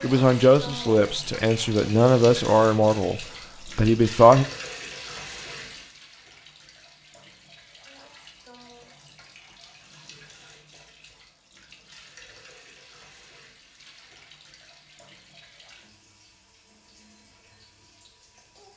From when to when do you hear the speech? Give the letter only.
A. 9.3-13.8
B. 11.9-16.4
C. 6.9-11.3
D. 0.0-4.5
D.